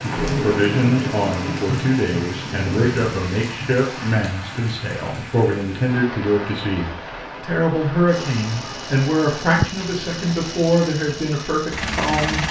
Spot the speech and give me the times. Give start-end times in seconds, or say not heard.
0.0-12.4.